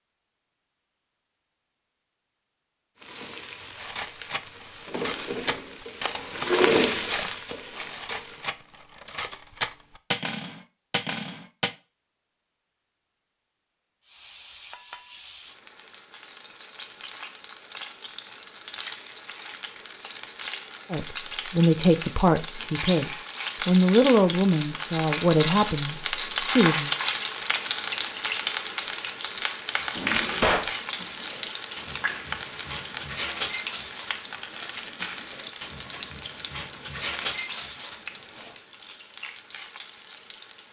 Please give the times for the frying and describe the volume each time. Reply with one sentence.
The frying can be heard from 3.0 to 8.6 s, getting louder then quieter; and from 14.1 to 40.6 s, getting louder then quieter.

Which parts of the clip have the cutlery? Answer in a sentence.
The cutlery can be heard from 3.8 to 11.8 s and from 29.7 to 38.5 s.